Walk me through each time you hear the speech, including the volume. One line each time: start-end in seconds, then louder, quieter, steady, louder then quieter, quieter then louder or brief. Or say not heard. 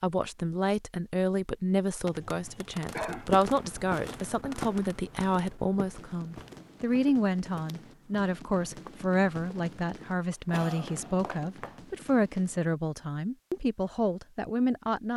0.0-15.1 steady.